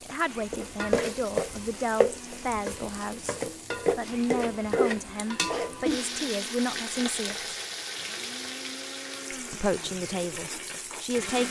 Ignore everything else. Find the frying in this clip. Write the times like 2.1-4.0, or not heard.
0.0-11.4.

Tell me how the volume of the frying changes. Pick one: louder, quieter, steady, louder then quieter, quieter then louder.
quieter.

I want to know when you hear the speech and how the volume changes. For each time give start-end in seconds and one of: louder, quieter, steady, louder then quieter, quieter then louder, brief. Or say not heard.
0.0-7.5 steady
9.3-11.4 brief.